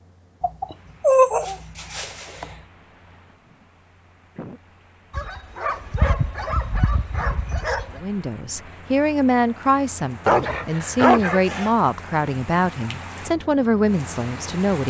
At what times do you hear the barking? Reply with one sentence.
The barking can be heard from 0.4 to 2.5 s, from 5.1 to 8.0 s and from 10.2 to 11.7 s.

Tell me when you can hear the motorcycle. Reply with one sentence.
The motorcycle can't be heard in this clip.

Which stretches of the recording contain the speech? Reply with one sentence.
You can hear the speech from 8.0 to 14.8 s.